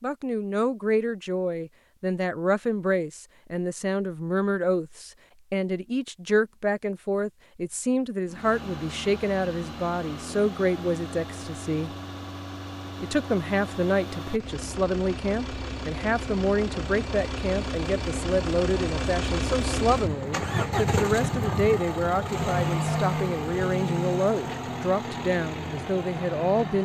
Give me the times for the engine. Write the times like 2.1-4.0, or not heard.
8.2-26.8.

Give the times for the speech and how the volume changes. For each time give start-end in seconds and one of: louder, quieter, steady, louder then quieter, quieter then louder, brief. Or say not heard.
0.0-11.9 steady
13.0-26.8 steady.